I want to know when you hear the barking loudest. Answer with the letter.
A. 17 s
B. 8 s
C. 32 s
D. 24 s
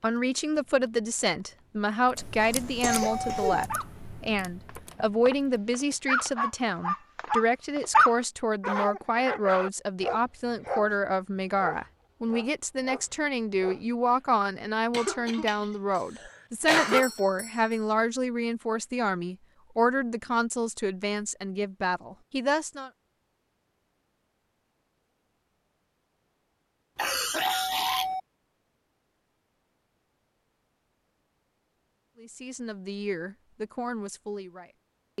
B.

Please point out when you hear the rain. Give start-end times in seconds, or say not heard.
not heard.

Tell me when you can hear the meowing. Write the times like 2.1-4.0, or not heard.
not heard.